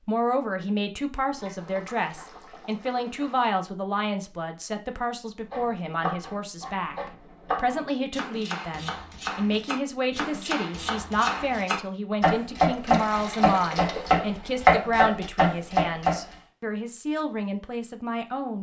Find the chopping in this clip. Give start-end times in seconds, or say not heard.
5.5-16.4.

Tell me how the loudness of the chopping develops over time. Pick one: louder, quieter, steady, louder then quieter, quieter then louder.
louder.